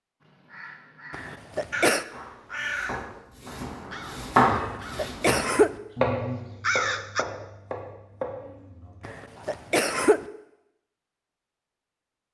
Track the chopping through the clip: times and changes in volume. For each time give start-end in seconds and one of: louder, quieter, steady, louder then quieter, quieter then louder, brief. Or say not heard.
2.1-9.6 louder then quieter.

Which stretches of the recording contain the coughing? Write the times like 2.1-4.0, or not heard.
1.1-2.0, 4.5-5.8, 9.0-10.2.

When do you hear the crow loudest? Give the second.
7 s.